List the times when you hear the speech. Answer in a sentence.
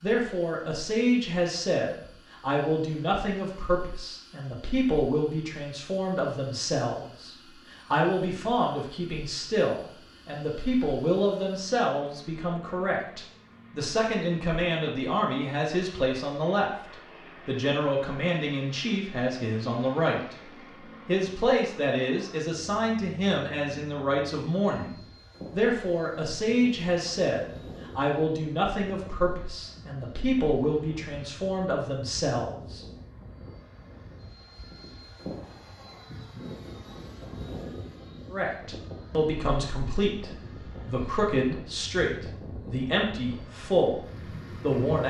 You can hear the speech from 0.0 to 20.4 s, from 21.1 to 32.9 s and from 38.3 to 45.0 s.